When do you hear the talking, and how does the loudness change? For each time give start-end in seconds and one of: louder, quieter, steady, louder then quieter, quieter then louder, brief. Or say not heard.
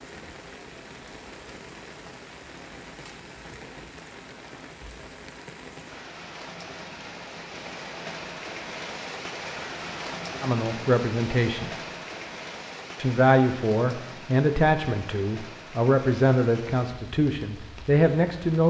10.4-11.7 brief
12.9-18.6 steady.